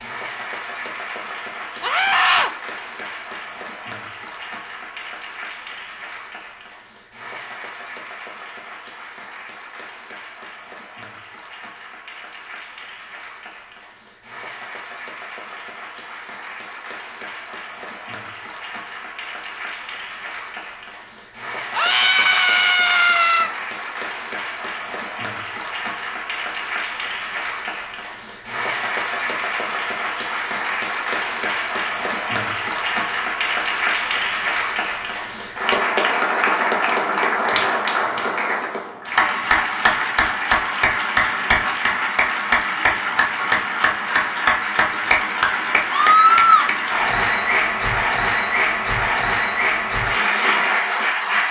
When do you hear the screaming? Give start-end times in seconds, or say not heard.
1.8-2.5, 21.8-23.5, 45.9-46.7.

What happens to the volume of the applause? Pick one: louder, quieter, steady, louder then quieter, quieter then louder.
louder.